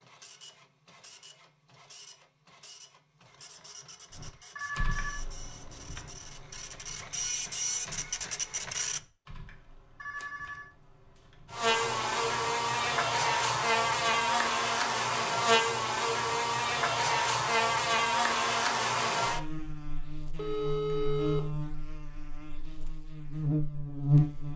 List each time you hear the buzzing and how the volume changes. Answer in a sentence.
You can hear the buzzing from 11.5 to 24.5 s, getting quieter.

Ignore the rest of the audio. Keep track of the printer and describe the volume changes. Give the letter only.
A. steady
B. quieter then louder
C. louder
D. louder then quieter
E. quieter
C.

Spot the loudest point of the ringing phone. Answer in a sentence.
The loudest moment of the ringing phone is at 21 seconds.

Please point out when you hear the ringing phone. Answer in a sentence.
You can hear the ringing phone from 4.5 to 5.2 s, from 10.0 to 10.7 s and from 20.4 to 21.6 s.